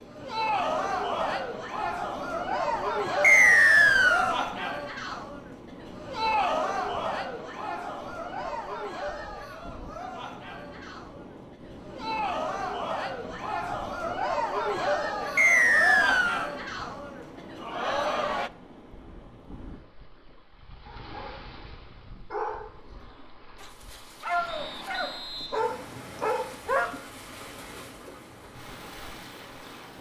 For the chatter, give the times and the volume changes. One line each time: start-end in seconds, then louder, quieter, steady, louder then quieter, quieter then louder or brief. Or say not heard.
0.1-18.5 quieter then louder.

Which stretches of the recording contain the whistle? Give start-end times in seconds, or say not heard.
3.2-4.3, 15.3-16.5, 24.4-26.4.